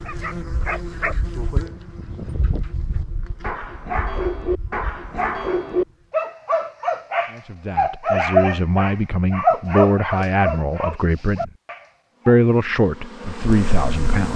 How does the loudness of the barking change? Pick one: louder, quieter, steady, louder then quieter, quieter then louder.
louder.